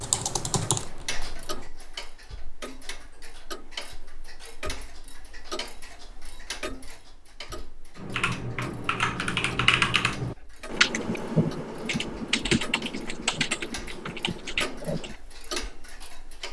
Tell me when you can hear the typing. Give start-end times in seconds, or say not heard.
0.0-1.7, 8.0-15.2.